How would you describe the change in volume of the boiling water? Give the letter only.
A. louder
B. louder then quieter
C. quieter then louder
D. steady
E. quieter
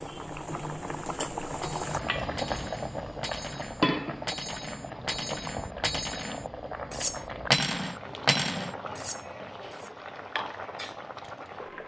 E.